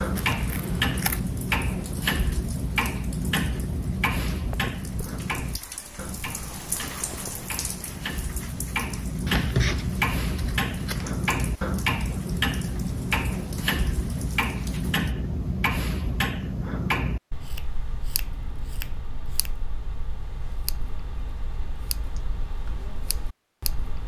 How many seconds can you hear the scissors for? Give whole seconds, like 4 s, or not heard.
5 s.